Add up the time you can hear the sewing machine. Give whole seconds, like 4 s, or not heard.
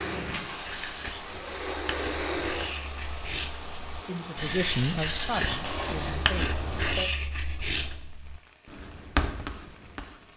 3 s.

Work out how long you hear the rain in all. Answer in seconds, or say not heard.
10 s.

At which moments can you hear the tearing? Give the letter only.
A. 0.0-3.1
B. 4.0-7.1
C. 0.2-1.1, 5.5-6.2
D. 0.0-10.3
C.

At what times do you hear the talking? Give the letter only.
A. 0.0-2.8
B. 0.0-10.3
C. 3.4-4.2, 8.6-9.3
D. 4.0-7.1
D.